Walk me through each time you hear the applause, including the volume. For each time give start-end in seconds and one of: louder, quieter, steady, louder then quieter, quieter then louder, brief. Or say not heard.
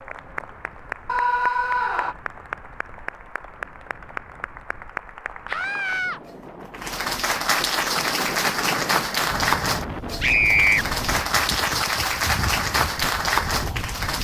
0.0-14.1 louder.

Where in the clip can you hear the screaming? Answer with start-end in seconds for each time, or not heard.
1.1-2.1, 5.5-6.2, 10.2-10.8.